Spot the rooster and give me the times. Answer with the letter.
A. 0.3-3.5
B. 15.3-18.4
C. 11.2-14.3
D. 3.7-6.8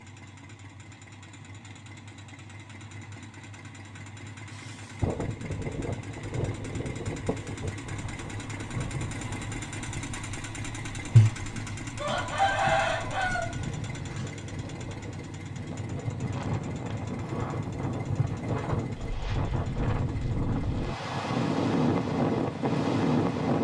C.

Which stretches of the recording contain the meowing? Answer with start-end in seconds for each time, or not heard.
not heard.